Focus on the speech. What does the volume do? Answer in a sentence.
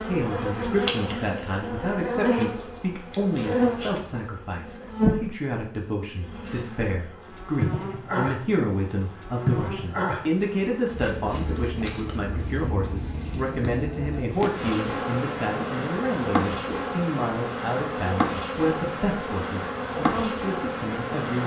The volume of the speech stays about the same.